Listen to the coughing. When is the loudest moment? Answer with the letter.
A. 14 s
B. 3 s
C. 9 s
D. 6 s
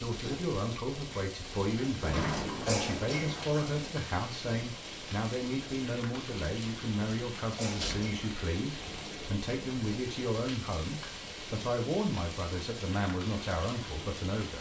B.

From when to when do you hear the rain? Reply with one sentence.
The rain can be heard from 0.0 to 14.5 s.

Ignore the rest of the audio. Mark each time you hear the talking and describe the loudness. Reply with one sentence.
The talking can be heard from 0.0 to 14.5 s, at a steady volume.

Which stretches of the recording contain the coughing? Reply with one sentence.
The coughing can be heard from 2.6 to 3.4 s and from 7.5 to 8.2 s.